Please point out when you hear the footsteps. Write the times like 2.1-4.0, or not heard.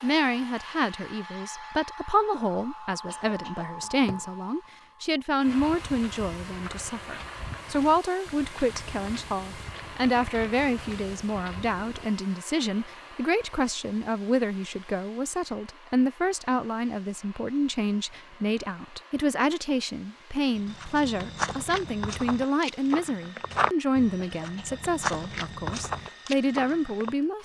5.5-12.1, 20.6-27.1.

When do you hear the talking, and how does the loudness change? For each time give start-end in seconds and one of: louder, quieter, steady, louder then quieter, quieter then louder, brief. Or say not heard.
0.0-27.4 steady.